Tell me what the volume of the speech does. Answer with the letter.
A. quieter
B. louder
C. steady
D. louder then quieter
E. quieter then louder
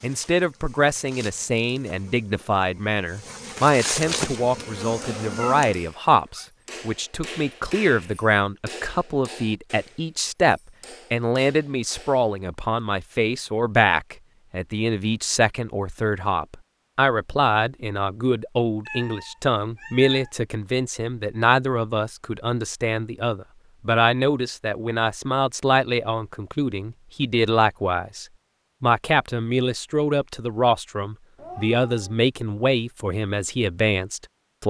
C.